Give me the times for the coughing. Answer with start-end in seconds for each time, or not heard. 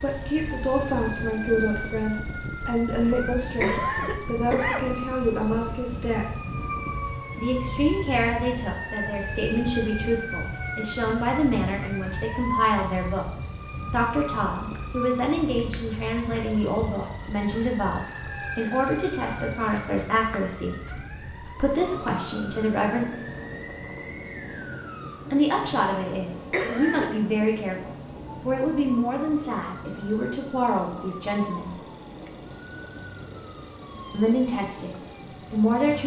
2.9-4.8, 26.1-27.1.